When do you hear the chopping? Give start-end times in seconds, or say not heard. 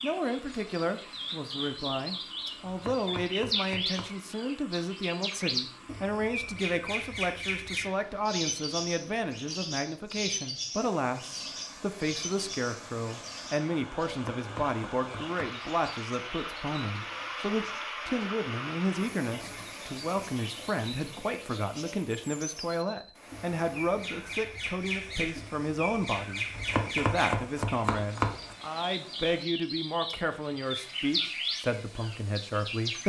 2.6-4.1, 14.1-15.6, 26.5-28.6.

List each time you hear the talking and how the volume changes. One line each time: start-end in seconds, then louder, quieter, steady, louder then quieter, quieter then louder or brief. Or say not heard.
0.0-33.0 steady.